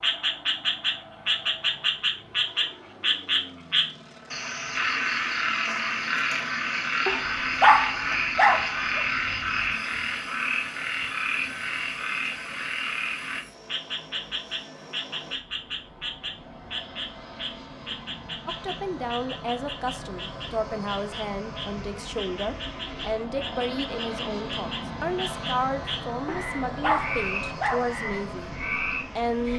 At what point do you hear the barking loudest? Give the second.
8 s.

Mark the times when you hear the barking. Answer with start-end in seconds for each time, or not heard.
7.0-9.7, 26.2-27.9.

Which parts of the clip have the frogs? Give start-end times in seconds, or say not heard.
0.0-29.5.